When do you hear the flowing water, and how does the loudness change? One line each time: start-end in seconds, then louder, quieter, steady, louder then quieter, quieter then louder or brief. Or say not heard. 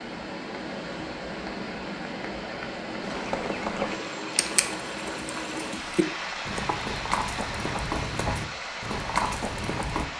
0.0-10.1 steady.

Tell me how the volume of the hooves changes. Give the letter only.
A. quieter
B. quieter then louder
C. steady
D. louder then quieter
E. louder
B.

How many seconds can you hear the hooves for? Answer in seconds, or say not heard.
7 s.